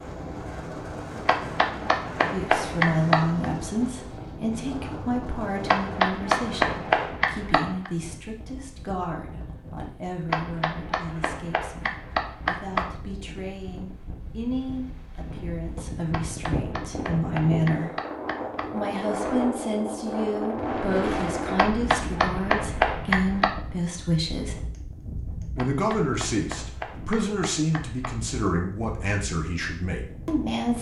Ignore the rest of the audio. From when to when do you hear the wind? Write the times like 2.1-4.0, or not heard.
0.0-30.7.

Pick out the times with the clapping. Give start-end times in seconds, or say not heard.
1.2-3.5, 5.7-7.9, 10.2-12.9, 16.1-18.7, 21.6-23.5, 25.6-28.2.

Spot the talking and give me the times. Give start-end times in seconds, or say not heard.
2.3-17.9, 18.7-24.6, 25.6-30.7.